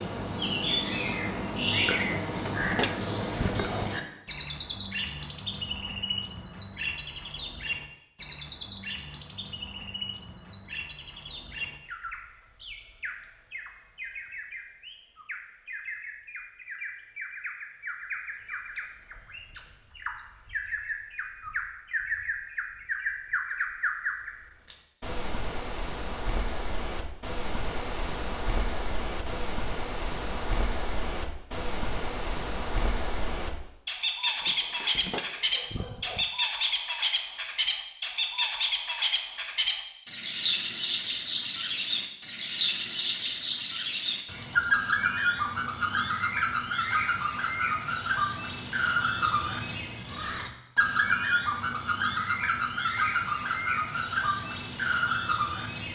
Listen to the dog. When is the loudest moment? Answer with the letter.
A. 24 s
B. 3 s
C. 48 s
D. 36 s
B.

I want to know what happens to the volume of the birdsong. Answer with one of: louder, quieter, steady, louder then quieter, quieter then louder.
quieter then louder.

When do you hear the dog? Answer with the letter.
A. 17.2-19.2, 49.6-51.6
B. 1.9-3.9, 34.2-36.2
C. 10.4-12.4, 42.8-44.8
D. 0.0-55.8
B.